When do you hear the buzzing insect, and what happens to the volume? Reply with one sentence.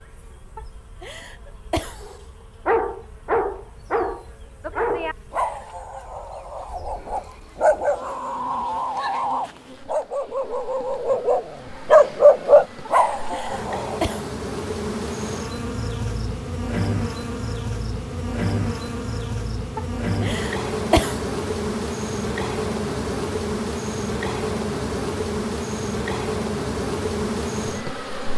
You can hear the buzzing insect from 0.0 to 28.3 s, getting louder.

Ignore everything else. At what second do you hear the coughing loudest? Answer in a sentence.
The loudest moment of the coughing is at 21 seconds.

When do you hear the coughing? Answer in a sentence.
The coughing can be heard from 0.6 to 2.0 s, from 12.8 to 14.3 s and from 19.8 to 21.2 s.